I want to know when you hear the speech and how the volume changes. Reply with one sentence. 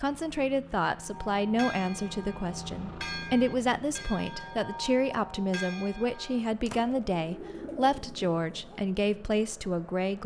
The speech can be heard from 0.0 to 10.2 s, at a steady volume.